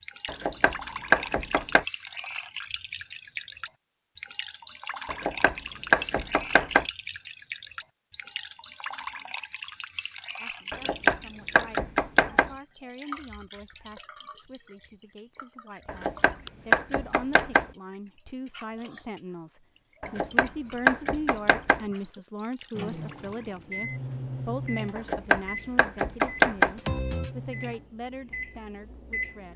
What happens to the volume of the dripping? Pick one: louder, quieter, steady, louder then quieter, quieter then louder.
quieter.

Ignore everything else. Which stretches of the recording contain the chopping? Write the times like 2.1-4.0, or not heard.
0.2-1.9, 5.0-6.8, 10.7-12.5, 15.8-17.6, 20.0-21.8, 24.9-26.8.